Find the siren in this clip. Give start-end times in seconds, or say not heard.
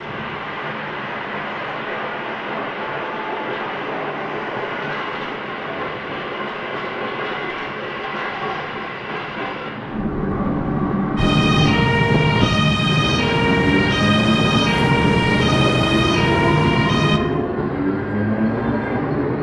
11.2-17.2.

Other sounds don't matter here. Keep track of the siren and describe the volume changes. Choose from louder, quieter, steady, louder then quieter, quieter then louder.
steady.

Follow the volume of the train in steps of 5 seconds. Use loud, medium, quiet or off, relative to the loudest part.
medium, medium, loud, loud.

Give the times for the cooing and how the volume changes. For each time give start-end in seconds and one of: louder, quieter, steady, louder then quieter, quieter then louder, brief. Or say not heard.
not heard.